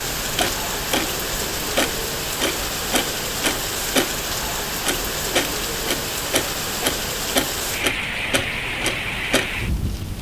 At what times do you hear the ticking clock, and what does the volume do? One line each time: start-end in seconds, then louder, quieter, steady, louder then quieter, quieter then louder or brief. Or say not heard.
0.0-10.1 steady.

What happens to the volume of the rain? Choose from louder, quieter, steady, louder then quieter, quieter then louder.
steady.